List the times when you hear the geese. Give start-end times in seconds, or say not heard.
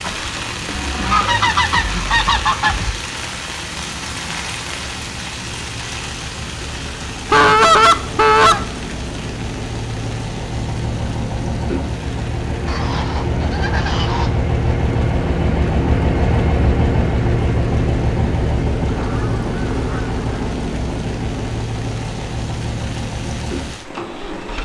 0.0-3.0, 7.2-8.7, 12.7-14.3, 18.9-20.2.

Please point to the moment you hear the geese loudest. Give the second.
8 s.